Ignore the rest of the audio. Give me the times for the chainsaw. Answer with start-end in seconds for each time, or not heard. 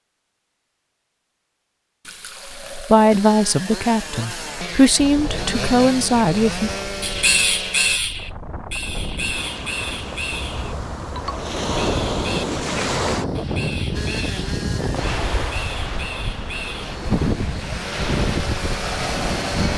3.1-8.0, 13.9-19.7.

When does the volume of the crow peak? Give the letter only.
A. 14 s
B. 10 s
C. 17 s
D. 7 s
D.